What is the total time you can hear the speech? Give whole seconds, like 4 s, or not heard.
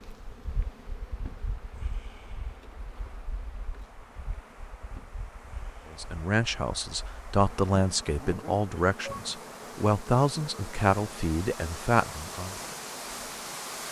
7 s.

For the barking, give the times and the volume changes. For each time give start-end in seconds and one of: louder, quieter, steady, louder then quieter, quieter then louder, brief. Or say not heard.
not heard.